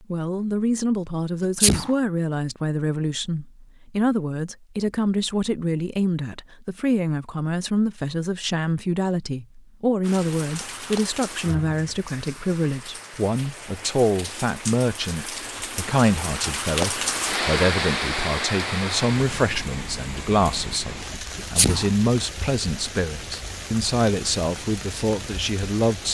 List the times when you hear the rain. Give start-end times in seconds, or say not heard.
10.0-26.0.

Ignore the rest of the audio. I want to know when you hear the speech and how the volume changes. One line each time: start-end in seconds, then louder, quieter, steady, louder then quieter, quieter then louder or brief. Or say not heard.
0.1-26.0 steady.